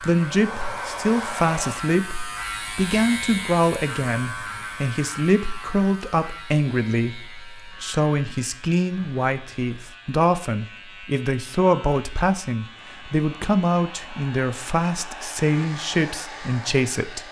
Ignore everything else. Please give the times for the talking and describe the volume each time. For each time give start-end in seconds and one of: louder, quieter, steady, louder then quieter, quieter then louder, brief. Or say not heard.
0.1-17.2 steady.